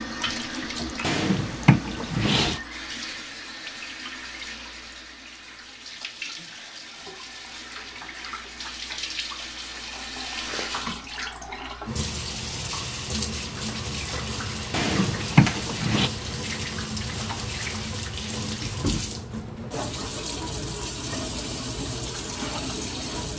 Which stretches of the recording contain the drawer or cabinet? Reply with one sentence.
The drawer or cabinet can be heard from 1.0 to 2.6 s and from 14.7 to 16.1 s.